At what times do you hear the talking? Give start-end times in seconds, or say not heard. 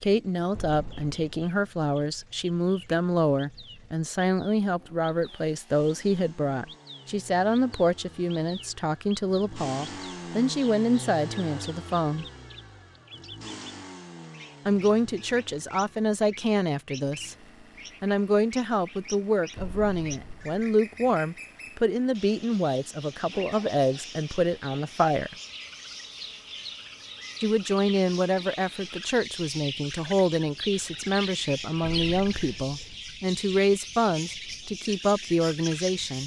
0.0-12.2, 14.7-17.4, 18.0-25.4, 27.4-36.2.